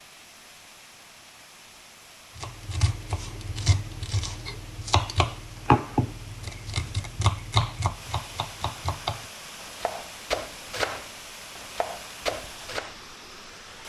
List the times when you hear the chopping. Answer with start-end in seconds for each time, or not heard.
2.4-12.9.